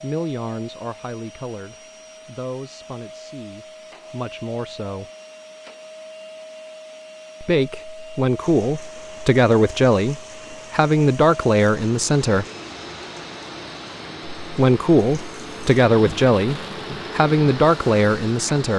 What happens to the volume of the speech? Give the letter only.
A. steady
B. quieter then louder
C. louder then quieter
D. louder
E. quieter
D.